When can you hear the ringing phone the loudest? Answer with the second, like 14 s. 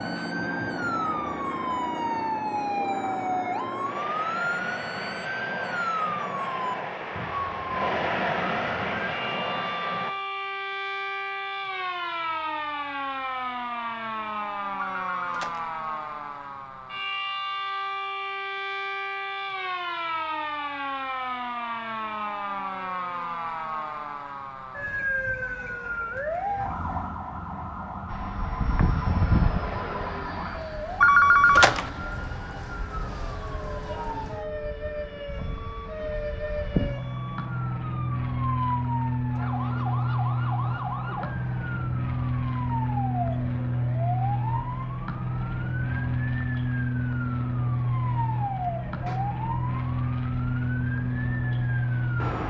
31 s.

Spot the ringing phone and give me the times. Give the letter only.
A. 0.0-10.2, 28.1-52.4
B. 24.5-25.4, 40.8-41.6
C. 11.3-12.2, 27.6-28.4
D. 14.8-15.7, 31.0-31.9
D.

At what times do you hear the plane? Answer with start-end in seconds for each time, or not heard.
0.0-10.2, 28.1-52.4.